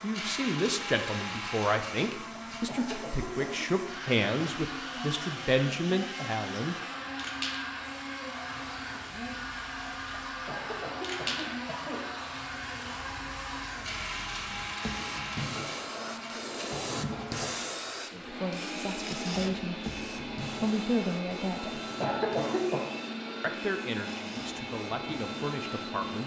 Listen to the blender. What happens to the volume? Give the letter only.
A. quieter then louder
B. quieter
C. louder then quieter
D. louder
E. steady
E.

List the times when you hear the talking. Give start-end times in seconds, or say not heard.
0.0-6.8, 18.1-21.8, 23.4-26.2.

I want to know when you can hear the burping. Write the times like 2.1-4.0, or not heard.
not heard.